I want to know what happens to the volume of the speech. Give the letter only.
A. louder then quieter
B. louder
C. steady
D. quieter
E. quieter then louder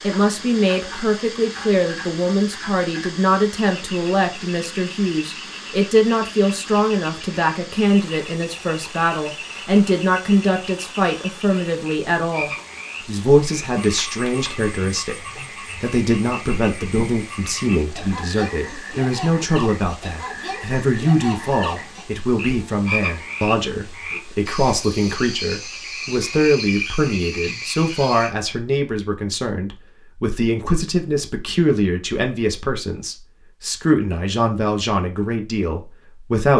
C.